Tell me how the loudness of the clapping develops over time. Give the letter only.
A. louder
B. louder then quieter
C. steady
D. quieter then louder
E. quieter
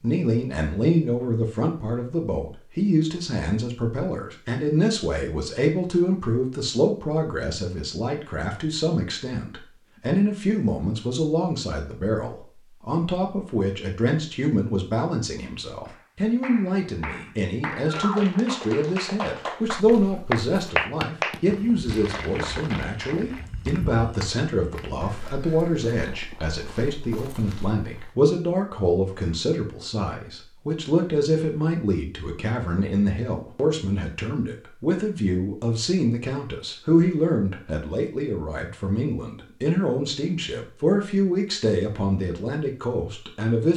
B.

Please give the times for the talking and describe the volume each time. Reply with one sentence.
The talking can be heard from 0.0 to 43.7 s, at a steady volume.